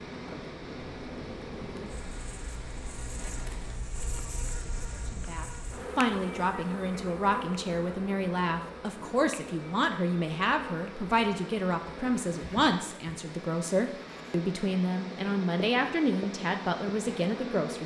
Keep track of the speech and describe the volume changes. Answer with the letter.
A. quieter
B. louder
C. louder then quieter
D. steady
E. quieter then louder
D.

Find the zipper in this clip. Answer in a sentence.
The zipper can be heard from 3.1 to 3.9 s.